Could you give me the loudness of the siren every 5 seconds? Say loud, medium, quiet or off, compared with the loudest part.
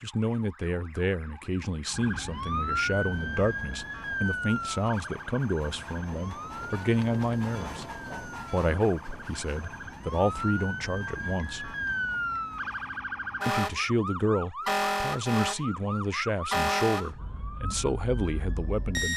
loud, medium, loud, loud.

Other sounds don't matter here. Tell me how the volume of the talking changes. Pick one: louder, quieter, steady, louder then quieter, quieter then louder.
steady.